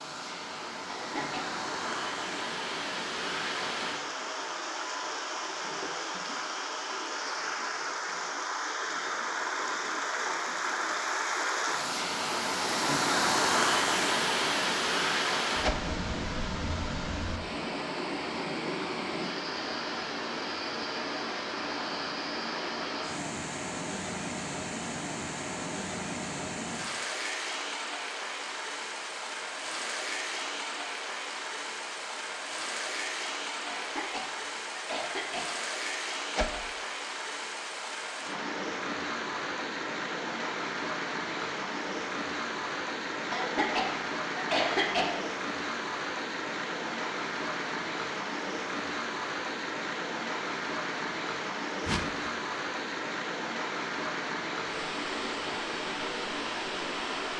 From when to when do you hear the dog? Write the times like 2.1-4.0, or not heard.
not heard.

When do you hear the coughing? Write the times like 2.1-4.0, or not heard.
0.8-1.6, 33.7-35.5, 43.3-45.1.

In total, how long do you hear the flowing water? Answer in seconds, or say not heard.
57 s.